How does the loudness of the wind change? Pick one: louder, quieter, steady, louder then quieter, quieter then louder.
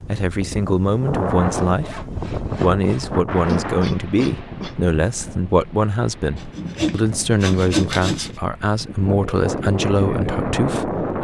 quieter then louder.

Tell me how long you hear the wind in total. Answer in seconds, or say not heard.
11 s.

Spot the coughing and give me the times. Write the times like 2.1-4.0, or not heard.
3.5-4.8.